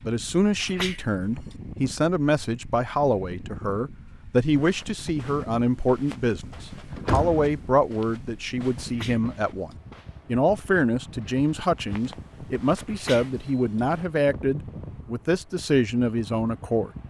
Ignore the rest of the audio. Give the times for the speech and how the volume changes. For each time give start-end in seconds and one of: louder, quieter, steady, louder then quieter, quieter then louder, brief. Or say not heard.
0.0-16.9 steady.